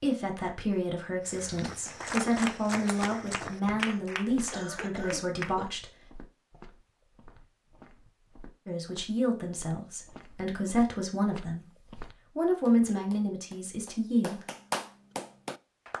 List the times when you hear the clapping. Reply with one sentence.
You can hear the clapping from 1.9 to 5.5 s and from 12.7 to 15.9 s.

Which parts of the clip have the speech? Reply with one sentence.
You can hear the speech from 0.0 to 5.9 s and from 8.7 to 14.4 s.